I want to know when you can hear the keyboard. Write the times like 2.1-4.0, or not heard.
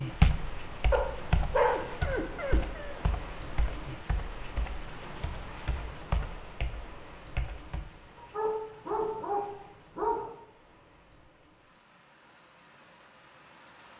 0.0-7.8.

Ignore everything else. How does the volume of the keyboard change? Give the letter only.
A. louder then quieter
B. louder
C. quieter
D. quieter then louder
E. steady
D.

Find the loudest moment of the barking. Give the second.
2 s.